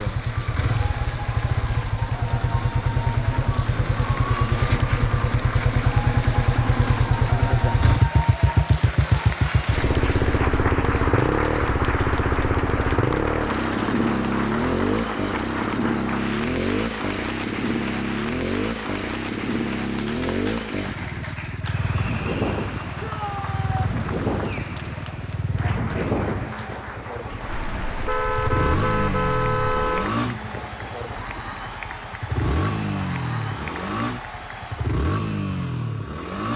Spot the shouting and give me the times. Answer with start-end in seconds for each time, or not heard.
23.0-23.9.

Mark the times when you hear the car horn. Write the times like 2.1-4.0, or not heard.
27.4-30.1.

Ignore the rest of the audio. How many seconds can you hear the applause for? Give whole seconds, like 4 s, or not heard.
35 s.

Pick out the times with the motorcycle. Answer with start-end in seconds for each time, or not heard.
0.0-36.5.